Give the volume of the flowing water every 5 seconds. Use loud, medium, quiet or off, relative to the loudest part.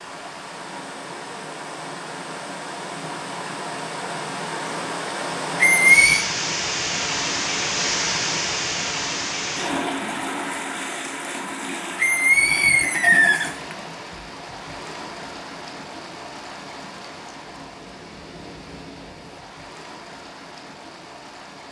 medium, loud, medium, quiet, quiet.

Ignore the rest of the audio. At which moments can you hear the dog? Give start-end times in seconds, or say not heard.
not heard.